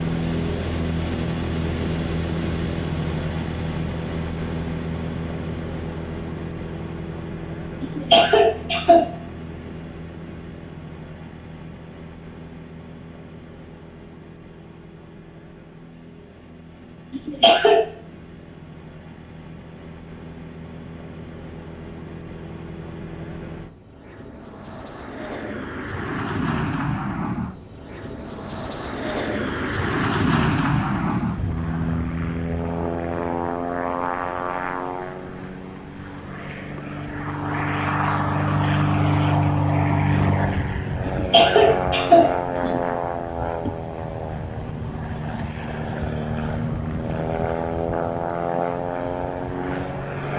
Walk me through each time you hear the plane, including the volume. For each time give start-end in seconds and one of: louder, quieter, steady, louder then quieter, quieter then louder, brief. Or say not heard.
0.0-50.3 quieter then louder.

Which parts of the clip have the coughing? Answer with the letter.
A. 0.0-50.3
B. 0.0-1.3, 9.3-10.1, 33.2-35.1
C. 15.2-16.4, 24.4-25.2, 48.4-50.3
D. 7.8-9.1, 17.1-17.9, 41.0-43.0
D.